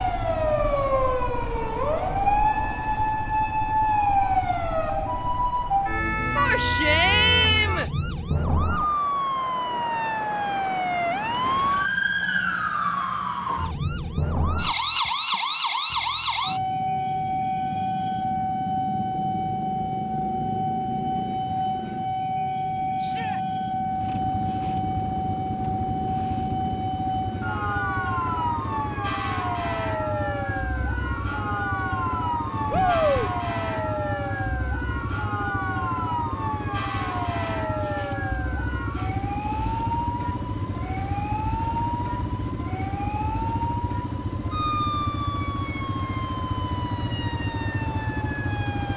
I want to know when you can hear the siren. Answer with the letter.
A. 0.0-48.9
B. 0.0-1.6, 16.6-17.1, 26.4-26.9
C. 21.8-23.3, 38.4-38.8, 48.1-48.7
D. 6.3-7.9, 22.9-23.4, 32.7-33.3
A.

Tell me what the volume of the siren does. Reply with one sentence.
The volume of the siren goes down.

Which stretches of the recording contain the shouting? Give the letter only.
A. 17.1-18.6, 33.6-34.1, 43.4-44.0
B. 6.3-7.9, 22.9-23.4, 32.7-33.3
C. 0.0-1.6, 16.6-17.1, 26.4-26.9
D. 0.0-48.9
B.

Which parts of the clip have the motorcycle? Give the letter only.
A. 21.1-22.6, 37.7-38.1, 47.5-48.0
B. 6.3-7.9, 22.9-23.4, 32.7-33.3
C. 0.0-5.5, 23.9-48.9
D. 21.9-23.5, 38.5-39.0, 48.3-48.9
C.